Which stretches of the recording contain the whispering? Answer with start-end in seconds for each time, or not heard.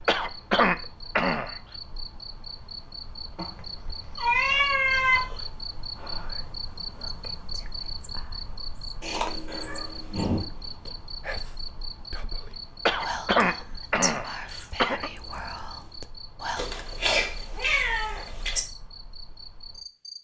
4.9-16.9.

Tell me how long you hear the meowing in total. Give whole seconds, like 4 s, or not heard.
5 s.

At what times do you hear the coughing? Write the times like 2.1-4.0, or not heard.
0.1-1.6, 12.8-15.1.